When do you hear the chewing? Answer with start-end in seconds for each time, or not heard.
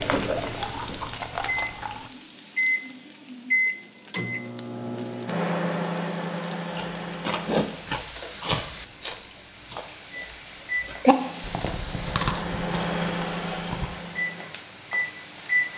0.0-2.1, 6.8-13.8.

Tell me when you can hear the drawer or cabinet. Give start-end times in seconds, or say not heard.
not heard.